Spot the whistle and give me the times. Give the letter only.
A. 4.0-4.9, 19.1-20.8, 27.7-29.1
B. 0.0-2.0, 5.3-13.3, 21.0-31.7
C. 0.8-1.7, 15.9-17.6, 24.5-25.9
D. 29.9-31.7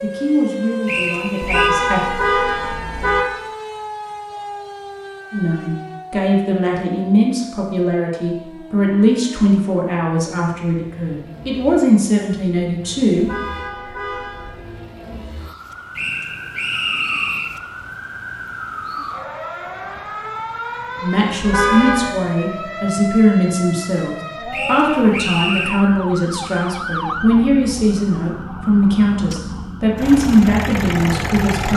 C.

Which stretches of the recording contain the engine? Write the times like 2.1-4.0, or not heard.
29.9-31.7.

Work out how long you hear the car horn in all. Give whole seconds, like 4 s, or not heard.
4 s.